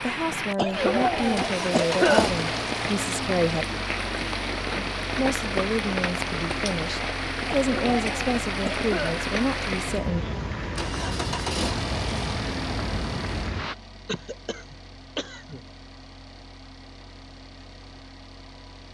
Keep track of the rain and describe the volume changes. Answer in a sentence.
The volume of the rain stays about the same.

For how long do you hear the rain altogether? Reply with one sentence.
You can hear the rain for 14 seconds altogether.